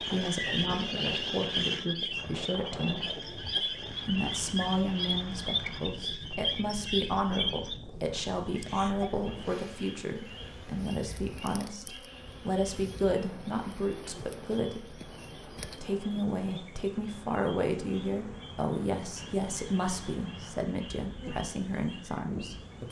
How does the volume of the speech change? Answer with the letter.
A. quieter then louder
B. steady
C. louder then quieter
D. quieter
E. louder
B.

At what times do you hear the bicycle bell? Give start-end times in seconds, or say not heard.
not heard.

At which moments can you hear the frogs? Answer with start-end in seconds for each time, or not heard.
0.0-22.8.